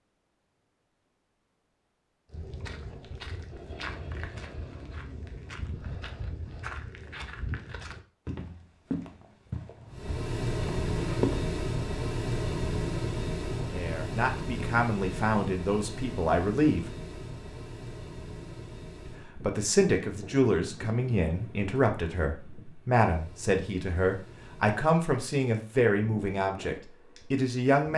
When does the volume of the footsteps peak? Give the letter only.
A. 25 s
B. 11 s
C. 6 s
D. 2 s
B.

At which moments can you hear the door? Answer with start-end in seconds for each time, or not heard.
not heard.